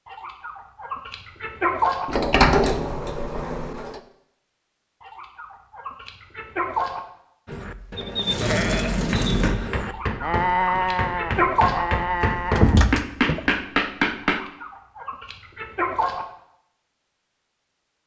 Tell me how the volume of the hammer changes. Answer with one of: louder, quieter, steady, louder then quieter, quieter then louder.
louder.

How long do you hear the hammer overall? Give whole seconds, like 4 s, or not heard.
5 s.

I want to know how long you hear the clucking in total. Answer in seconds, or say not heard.
8 s.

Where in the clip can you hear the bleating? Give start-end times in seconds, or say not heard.
7.5-13.6.